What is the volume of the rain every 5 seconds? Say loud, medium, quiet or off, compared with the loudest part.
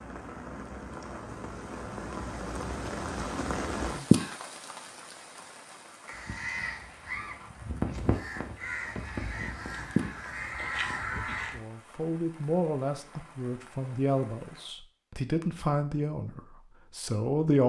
loud, medium, quiet, off.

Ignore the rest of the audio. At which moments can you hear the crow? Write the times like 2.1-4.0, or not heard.
6.0-11.6.